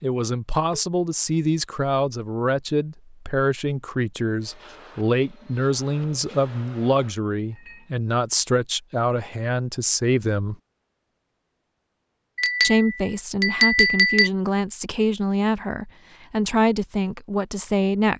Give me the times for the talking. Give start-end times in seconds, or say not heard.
0.0-10.6, 12.6-18.1.